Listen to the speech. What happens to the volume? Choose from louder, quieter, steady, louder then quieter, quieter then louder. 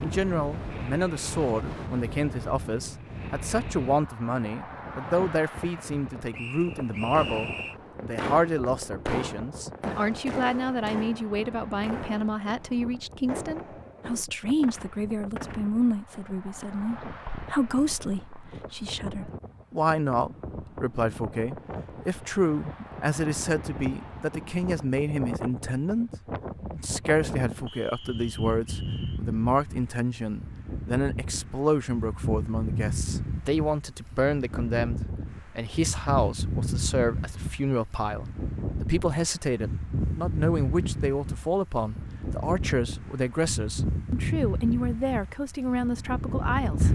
steady.